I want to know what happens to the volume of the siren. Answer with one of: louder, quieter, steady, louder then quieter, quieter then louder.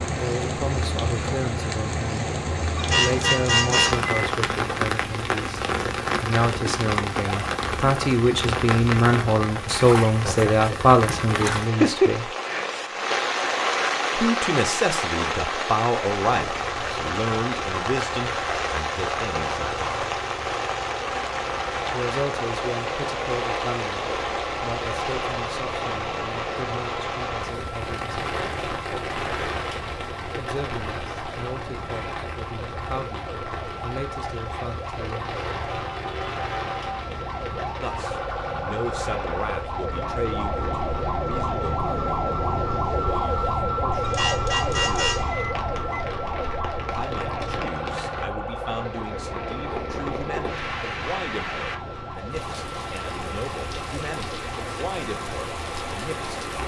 louder then quieter.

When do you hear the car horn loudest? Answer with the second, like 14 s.
4 s.